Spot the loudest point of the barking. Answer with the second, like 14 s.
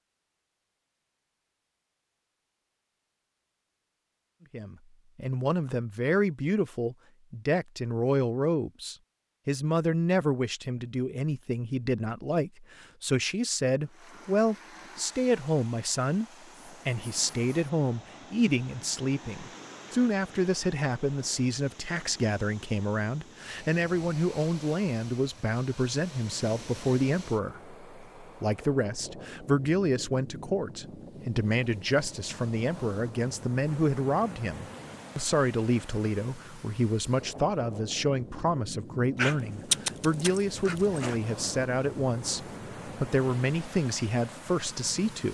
40 s.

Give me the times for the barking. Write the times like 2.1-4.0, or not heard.
39.1-41.2.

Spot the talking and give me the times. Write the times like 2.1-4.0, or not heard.
4.5-16.2, 16.9-45.2.